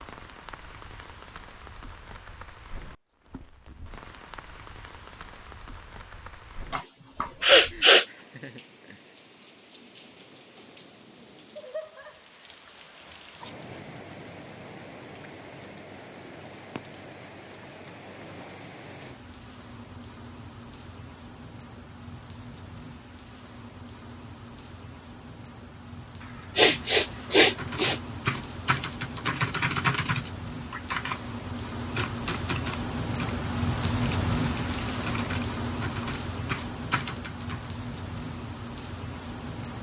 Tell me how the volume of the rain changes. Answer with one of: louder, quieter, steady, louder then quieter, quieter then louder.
louder.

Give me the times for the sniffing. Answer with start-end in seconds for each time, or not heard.
6.7-8.1, 26.2-28.0.